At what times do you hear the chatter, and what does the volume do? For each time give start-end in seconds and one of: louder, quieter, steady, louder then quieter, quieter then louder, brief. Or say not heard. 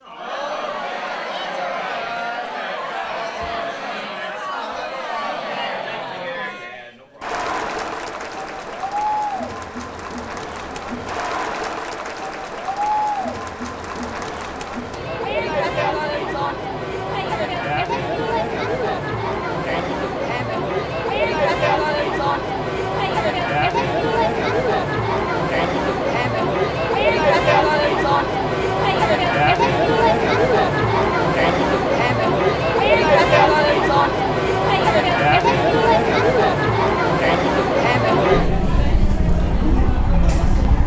0.0-40.8 louder.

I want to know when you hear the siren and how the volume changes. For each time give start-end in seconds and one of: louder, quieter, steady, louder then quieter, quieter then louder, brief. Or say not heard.
not heard.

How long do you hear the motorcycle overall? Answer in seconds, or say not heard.
2 s.